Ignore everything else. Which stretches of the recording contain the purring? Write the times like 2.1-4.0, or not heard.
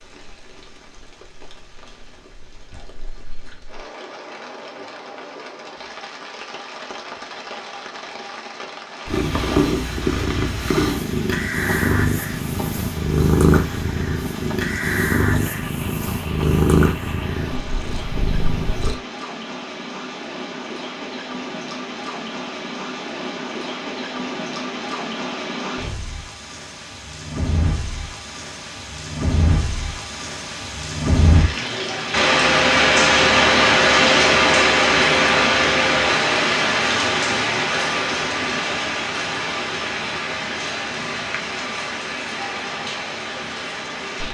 9.1-18.9.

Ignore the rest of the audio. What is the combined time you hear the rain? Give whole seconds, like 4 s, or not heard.
44 s.